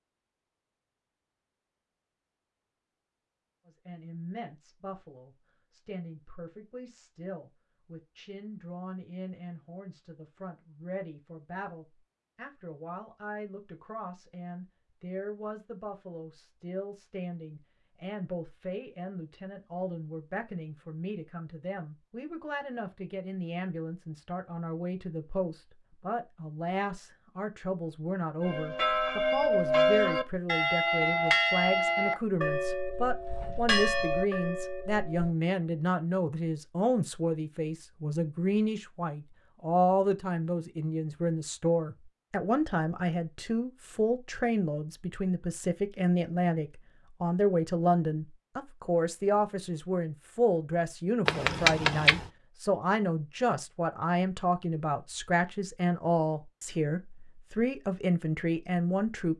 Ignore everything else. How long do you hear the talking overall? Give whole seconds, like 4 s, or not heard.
56 s.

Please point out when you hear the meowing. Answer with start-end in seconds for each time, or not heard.
51.2-52.2.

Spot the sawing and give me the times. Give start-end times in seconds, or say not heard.
not heard.